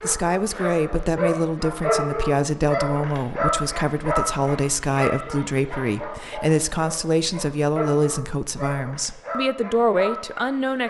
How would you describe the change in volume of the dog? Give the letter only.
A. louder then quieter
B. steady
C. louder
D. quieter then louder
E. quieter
E.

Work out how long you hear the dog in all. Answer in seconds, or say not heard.
11 s.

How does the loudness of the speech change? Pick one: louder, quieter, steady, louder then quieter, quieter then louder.
steady.